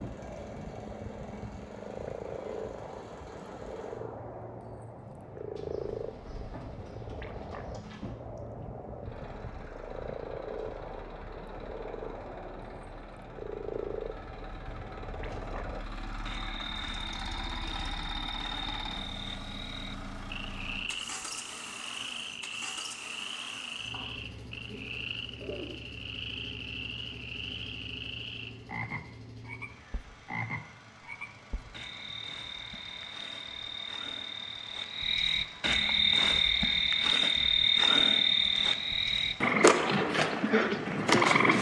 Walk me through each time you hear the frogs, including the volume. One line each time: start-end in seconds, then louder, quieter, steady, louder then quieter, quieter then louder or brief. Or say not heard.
0.0-41.5 louder.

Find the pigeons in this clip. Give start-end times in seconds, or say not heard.
5.5-8.2, 23.8-25.6.